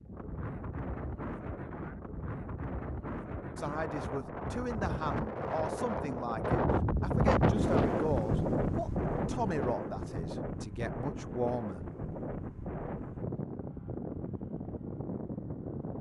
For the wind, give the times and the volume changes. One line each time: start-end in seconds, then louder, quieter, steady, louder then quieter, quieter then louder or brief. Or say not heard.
0.0-15.9 louder then quieter.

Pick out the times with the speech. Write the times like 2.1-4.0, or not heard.
3.5-11.8.